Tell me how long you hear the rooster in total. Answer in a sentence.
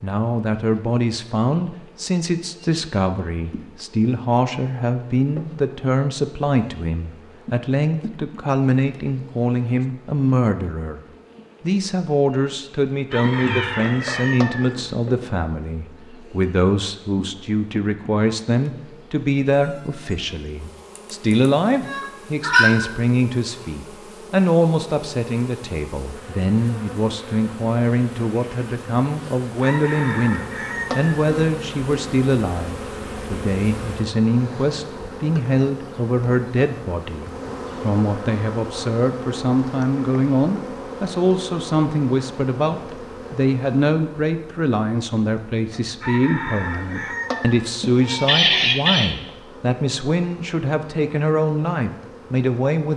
The rooster can be heard for 5 seconds in total.